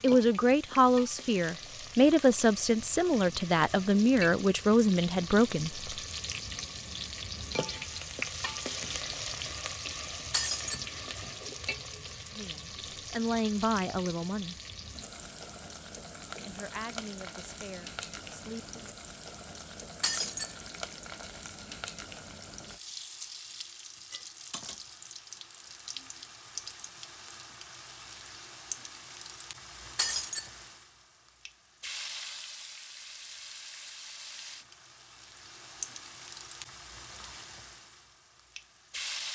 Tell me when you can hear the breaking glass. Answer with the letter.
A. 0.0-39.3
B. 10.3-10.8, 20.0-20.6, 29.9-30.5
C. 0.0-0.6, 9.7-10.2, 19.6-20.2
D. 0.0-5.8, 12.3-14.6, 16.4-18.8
B.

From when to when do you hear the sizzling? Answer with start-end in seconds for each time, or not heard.
0.0-39.3.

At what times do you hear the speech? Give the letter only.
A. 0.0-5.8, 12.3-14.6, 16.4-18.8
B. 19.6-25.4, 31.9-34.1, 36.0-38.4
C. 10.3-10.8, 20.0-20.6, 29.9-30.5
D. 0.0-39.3
A.